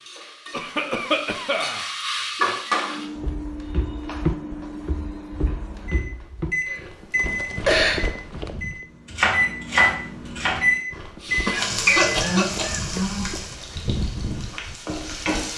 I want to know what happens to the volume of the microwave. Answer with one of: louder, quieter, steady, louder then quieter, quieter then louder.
louder.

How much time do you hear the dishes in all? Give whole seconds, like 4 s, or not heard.
not heard.